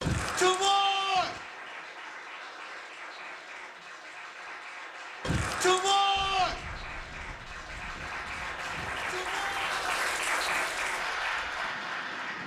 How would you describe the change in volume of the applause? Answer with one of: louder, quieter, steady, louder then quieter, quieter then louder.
louder.